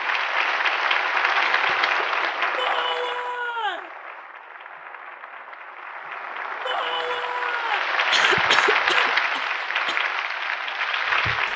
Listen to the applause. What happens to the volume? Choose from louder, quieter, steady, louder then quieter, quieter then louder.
quieter then louder.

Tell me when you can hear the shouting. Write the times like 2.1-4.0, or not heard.
2.5-3.9, 6.7-7.8.